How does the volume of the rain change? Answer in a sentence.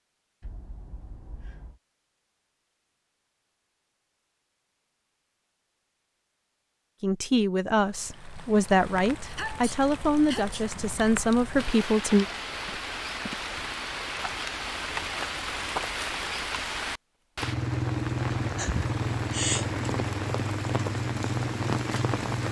The volume of the rain goes up.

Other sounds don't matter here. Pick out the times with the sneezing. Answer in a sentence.
The sneezing can be heard from 0.4 to 1.8 s, from 9.2 to 10.6 s and from 18.6 to 19.7 s.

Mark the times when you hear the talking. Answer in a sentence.
The talking can be heard from 7.0 to 12.2 s.